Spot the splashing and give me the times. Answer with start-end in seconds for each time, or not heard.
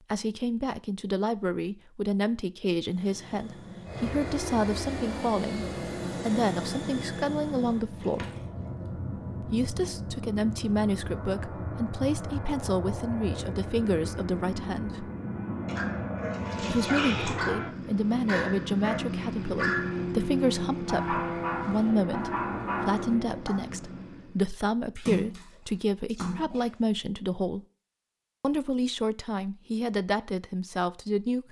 8.0-8.7, 15.7-17.4, 24.9-26.8.